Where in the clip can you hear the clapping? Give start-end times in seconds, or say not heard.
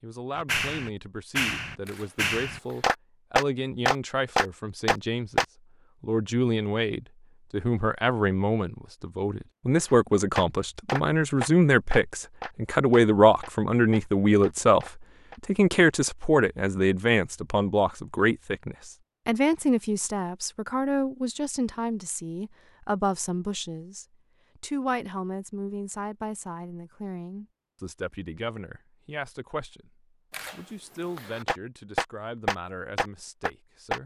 0.3-5.5, 9.8-15.4, 31.4-34.0.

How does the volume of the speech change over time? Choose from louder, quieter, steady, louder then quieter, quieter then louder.
louder then quieter.